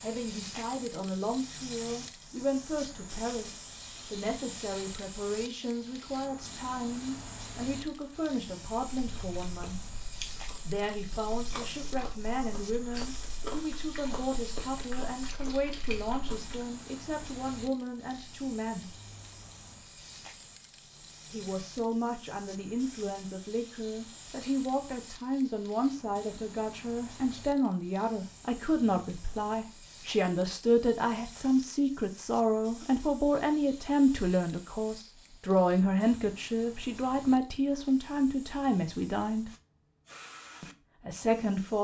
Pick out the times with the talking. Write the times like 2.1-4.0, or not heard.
0.0-9.8, 10.7-18.9, 21.3-39.5, 40.6-41.7.